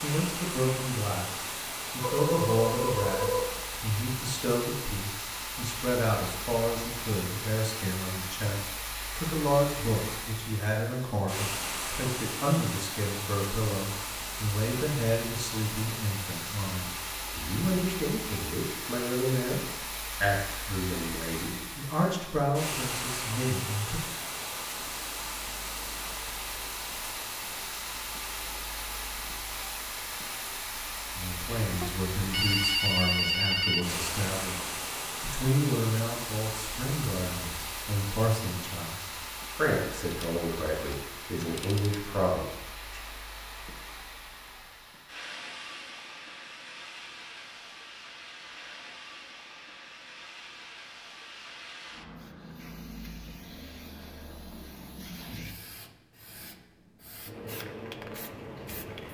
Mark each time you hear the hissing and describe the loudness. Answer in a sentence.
The hissing can be heard from 0.0 to 59.1 s, getting quieter.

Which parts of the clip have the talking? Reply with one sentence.
The talking can be heard from 0.0 to 19.6 s, from 20.2 to 24.0 s and from 31.1 to 43.0 s.